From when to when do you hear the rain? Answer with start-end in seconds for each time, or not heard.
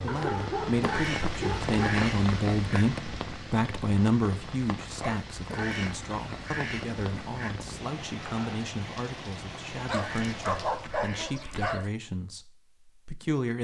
0.0-11.1.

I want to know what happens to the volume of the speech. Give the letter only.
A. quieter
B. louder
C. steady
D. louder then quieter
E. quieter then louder
A.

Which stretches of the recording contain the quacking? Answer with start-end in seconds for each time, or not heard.
0.8-2.9, 5.5-7.5, 9.9-11.8.